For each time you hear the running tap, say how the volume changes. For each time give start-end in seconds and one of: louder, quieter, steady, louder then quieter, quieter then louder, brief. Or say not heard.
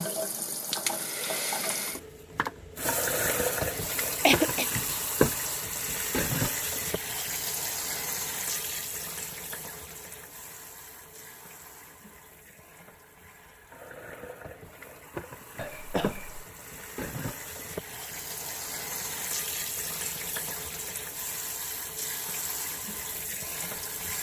0.0-24.1 quieter then louder.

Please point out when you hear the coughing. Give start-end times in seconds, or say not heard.
4.2-4.7, 15.6-16.4.